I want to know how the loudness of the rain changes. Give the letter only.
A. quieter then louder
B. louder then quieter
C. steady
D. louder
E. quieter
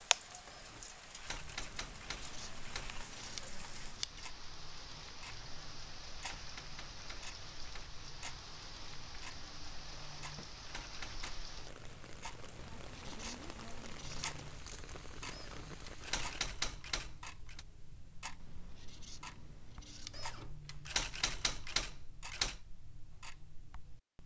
C.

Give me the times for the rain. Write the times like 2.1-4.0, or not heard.
0.0-16.4.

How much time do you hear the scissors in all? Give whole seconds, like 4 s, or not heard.
6 s.